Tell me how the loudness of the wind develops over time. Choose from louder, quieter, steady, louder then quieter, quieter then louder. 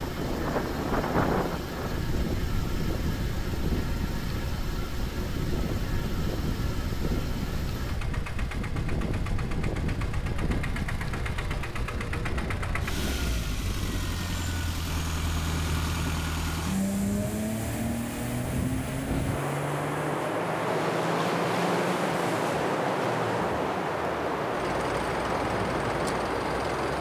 quieter then louder.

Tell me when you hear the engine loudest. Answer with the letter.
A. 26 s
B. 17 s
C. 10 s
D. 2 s
B.